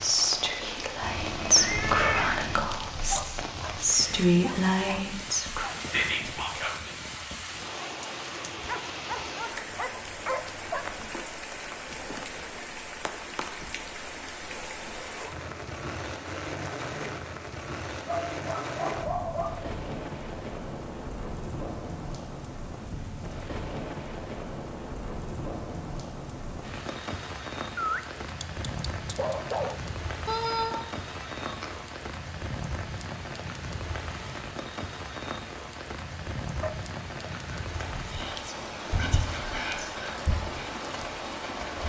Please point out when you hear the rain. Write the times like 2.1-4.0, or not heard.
0.0-41.8.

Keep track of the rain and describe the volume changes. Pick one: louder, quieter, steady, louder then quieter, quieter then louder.
steady.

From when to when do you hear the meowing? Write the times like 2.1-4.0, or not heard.
1.0-2.6, 30.2-31.8.